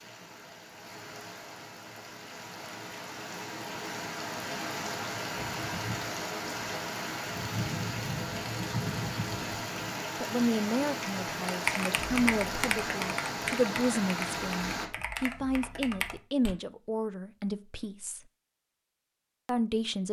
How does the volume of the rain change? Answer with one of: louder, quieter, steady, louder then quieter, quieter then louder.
louder.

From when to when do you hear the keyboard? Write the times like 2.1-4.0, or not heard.
11.4-16.6.